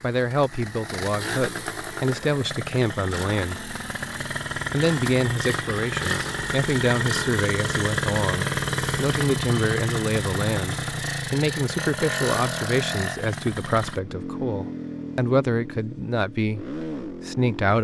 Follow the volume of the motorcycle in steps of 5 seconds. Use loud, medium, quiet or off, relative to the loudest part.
medium, loud, loud, medium.